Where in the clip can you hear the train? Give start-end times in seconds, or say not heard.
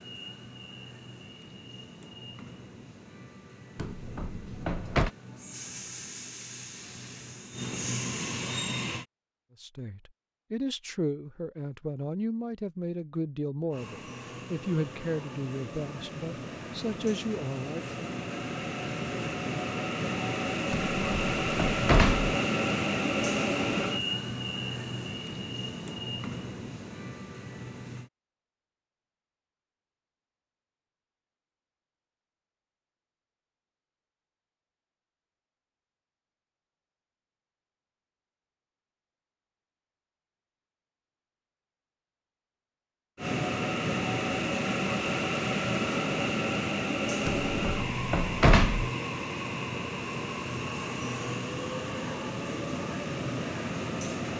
0.0-9.1, 13.7-28.1, 43.1-54.3.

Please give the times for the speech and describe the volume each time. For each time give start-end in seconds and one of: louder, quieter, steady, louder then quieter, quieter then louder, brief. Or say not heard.
9.6-18.0 steady.